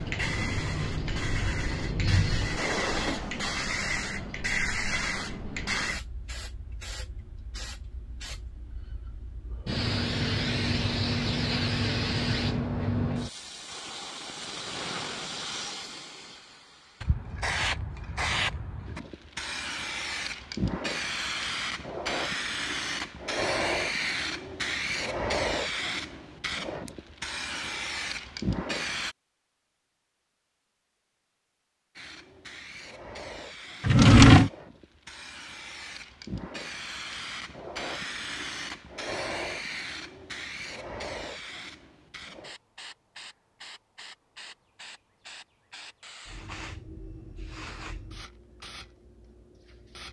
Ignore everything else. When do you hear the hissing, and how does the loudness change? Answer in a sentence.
The hissing can be heard from 0.0 to 29.1 s, at a steady volume; and from 31.9 to 50.0 s, getting louder then quieter.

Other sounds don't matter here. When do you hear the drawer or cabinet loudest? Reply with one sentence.
The volume of the drawer or cabinet peaks at 34 seconds.